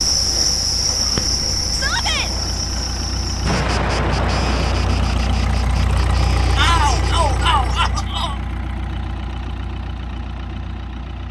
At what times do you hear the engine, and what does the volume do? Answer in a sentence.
The engine can be heard from 0.0 to 11.2 s, getting louder then quieter.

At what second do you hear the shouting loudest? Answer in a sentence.
The loudest moment of the shouting is at 7 seconds.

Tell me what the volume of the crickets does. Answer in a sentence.
The loudness of the crickets goes down.